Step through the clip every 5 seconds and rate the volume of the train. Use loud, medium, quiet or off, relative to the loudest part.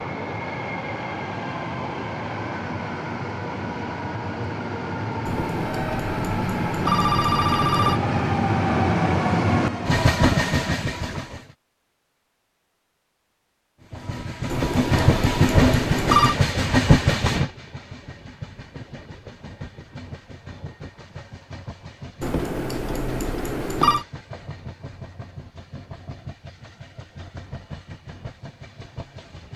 medium, loud, loud, loud, quiet, quiet.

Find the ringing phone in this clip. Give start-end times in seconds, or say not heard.
5.2-8.0, 14.5-16.4, 22.2-24.1.